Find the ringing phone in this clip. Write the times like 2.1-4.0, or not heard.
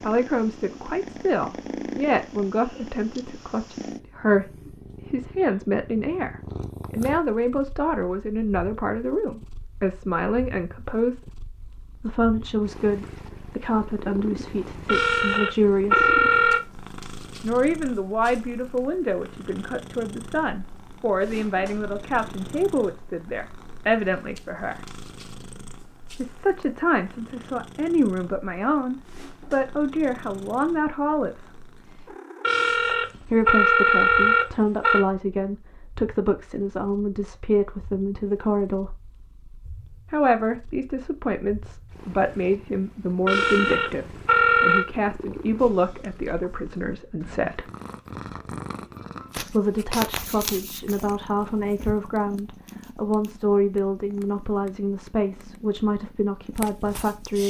14.8-16.6, 32.4-35.0, 43.2-44.9.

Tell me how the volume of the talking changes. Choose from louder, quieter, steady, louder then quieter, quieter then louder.
steady.